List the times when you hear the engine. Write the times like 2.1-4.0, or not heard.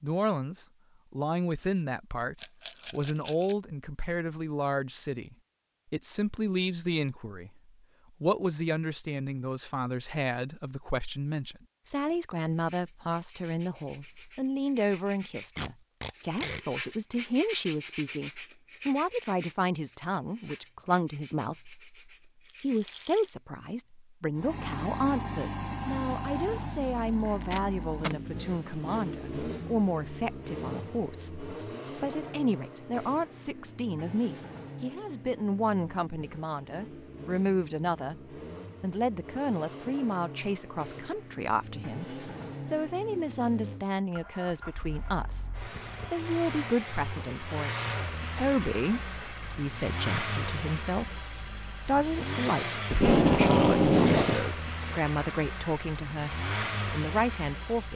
24.4-57.9.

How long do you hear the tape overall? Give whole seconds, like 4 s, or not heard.
3 s.